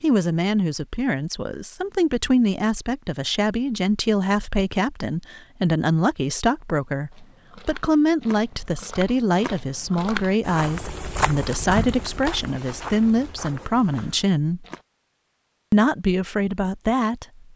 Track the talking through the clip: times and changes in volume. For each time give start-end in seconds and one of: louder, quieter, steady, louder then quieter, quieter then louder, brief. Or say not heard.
0.0-14.7 steady
15.7-17.4 brief.